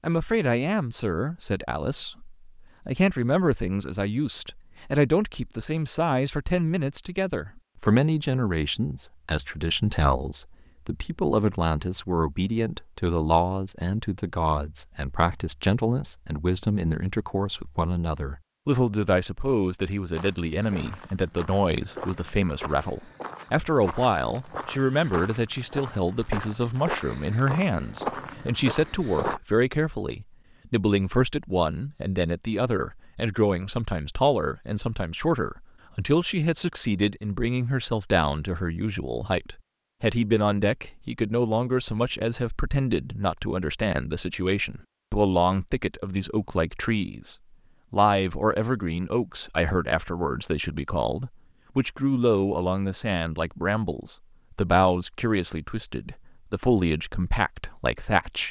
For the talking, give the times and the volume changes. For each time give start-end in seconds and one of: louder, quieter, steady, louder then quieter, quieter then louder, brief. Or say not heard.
0.0-58.4 steady.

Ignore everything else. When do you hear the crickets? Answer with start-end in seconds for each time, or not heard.
not heard.